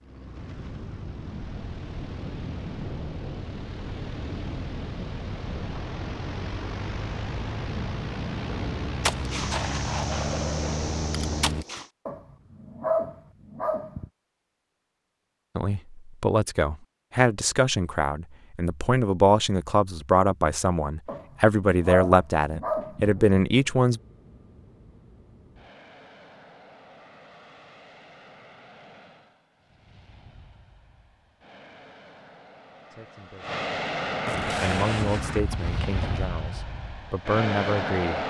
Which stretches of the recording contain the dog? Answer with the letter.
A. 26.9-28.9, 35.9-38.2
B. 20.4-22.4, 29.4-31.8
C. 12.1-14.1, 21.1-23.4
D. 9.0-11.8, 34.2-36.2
C.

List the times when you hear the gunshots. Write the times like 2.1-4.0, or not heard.
9.0-11.8, 34.2-36.2.